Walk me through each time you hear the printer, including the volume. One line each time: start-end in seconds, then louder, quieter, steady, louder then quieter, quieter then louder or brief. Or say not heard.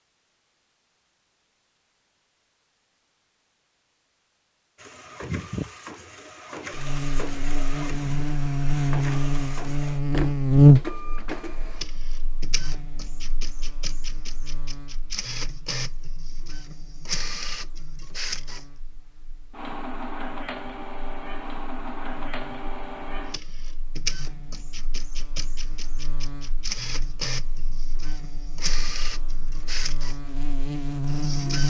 4.8-31.6 steady.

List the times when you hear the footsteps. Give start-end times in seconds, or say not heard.
not heard.